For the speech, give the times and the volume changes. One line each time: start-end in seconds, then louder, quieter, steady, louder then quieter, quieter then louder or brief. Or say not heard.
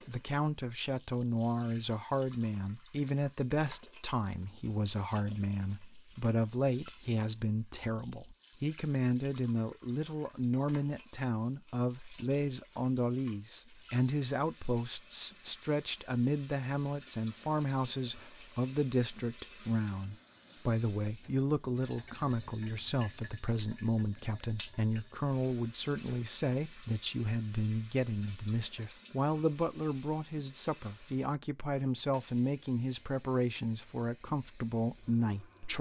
0.1-35.7 steady.